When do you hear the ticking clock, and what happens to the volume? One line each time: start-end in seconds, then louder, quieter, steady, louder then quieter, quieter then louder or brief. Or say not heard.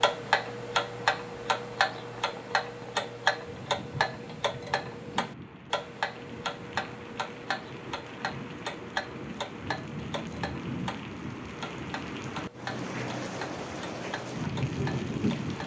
0.0-15.6 quieter.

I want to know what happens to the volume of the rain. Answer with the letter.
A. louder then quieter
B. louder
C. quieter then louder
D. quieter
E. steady
B.